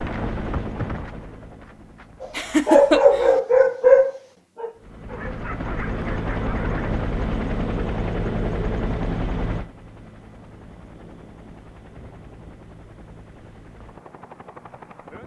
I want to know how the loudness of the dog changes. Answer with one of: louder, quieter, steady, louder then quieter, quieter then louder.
quieter.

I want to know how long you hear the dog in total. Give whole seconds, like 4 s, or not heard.
5 s.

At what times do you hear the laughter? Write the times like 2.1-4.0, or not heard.
2.4-3.4.